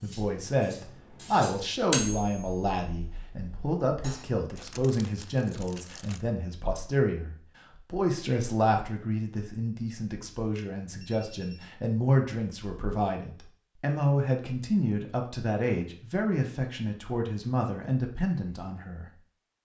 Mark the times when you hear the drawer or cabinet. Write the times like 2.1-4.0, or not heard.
not heard.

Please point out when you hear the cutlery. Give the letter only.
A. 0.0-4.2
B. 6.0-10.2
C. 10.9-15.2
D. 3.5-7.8
A.